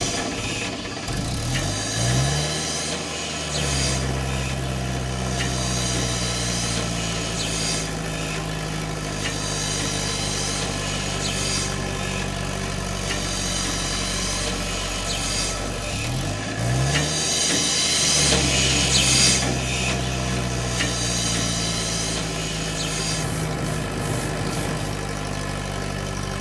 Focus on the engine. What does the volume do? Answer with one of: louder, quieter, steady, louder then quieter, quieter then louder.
steady.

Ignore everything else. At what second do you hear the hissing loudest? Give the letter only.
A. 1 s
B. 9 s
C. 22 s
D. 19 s
D.